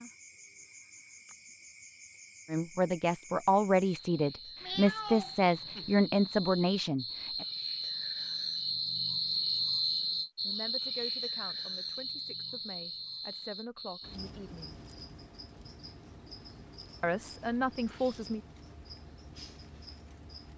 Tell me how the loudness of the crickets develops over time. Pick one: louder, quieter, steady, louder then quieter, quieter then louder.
louder then quieter.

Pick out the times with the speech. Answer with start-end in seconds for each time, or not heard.
2.5-7.5, 10.4-14.8, 17.0-18.4.